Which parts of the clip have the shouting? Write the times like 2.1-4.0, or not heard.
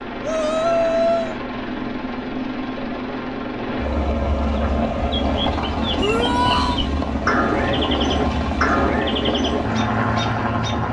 0.2-1.4, 6.0-6.8.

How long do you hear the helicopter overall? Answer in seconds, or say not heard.
11 s.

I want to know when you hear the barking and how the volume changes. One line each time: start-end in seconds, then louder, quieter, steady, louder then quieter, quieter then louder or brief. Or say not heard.
not heard.